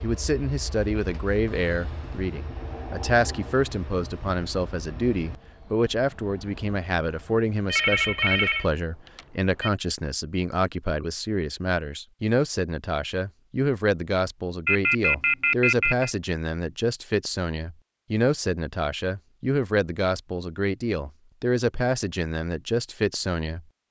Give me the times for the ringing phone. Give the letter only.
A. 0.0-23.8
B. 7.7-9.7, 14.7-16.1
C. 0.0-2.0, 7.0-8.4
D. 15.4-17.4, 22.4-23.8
B.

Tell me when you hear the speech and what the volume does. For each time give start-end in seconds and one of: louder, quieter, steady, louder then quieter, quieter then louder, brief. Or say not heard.
0.0-23.8 steady.